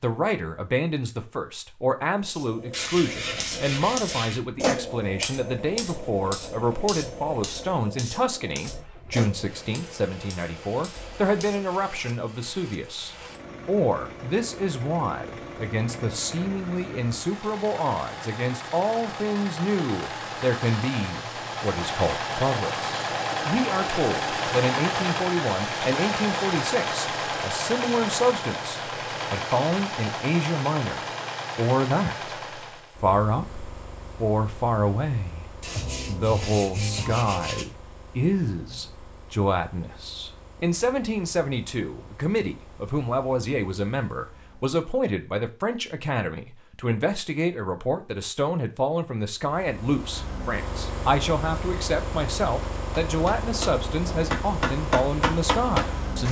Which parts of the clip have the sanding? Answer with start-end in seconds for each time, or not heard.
2.7-4.4, 35.6-37.6.